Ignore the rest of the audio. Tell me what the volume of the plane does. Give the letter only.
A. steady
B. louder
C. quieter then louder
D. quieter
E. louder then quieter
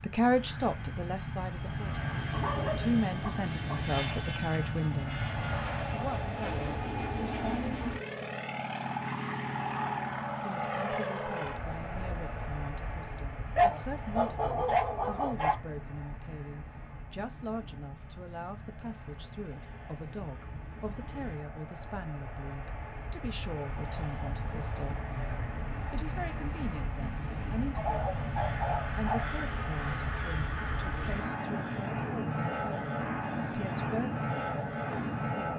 C.